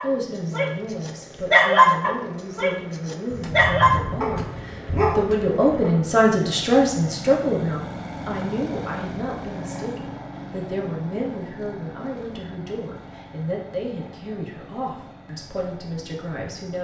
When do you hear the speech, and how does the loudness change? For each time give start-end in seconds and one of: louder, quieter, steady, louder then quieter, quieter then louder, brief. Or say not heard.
0.0-16.7 louder then quieter.